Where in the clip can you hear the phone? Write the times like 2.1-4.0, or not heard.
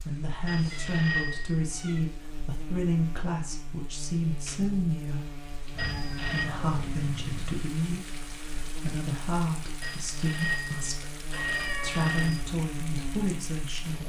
0.5-1.6, 5.8-6.5, 9.8-12.4.